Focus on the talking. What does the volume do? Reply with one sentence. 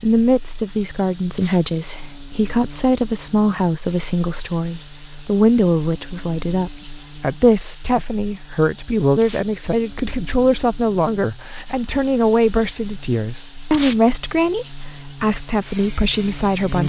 The volume of the talking stays about the same.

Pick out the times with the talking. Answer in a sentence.
You can hear the talking from 0.0 to 16.8 s.